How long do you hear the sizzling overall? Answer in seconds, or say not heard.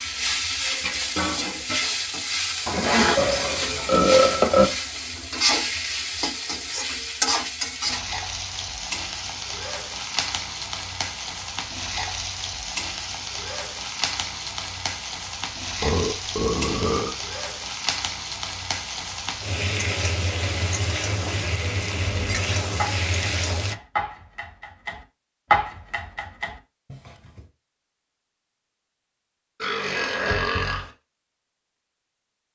24 s.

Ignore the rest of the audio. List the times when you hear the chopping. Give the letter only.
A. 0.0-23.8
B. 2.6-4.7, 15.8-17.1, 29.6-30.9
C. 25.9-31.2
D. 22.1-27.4
D.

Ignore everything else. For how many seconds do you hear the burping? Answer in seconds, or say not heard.
5 s.